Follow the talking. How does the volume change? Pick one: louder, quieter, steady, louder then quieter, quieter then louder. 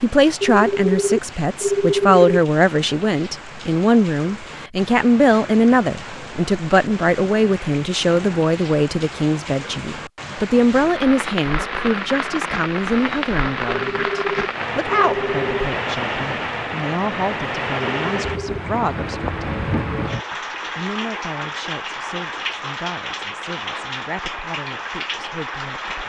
quieter.